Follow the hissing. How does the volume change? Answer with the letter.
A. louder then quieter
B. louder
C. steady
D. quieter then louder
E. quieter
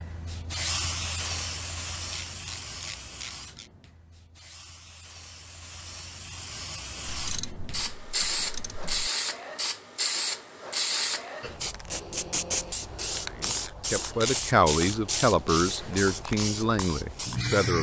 D.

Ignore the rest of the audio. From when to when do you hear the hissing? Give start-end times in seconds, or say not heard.
0.0-17.7.